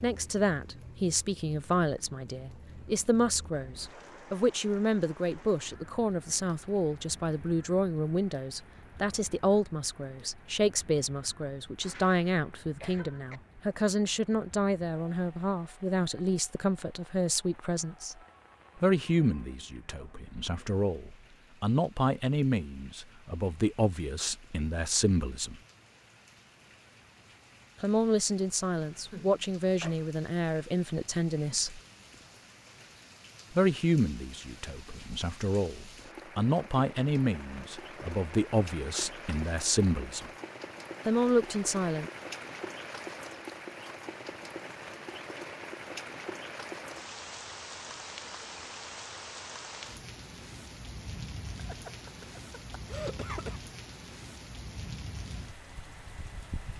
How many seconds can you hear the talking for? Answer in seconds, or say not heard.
37 s.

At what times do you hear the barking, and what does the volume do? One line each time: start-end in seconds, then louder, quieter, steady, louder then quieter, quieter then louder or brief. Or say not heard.
not heard.